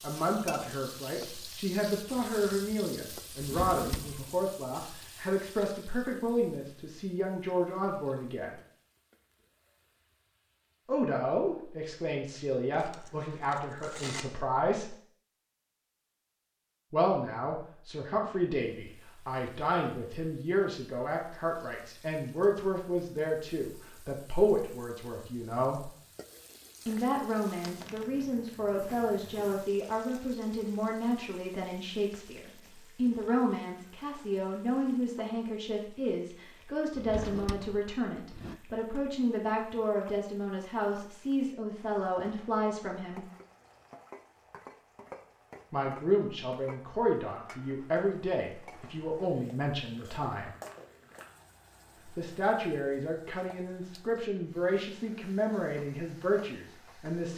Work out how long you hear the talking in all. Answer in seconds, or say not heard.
48 s.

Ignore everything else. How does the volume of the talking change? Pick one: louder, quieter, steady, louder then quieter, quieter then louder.
steady.